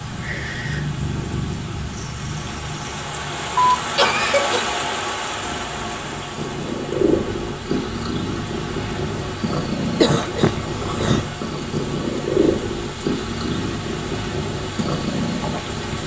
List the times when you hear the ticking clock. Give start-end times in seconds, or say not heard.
not heard.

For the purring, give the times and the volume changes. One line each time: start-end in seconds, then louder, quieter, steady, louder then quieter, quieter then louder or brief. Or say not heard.
0.0-16.0 quieter then louder.